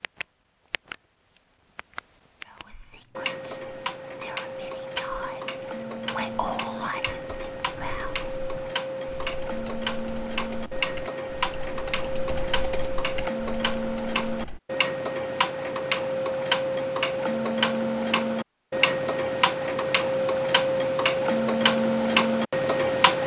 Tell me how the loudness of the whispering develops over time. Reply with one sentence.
The volume of the whispering goes up, then down.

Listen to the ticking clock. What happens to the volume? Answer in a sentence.
The loudness of the ticking clock goes up.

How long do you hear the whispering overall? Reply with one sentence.
You can hear the whispering for 6 seconds altogether.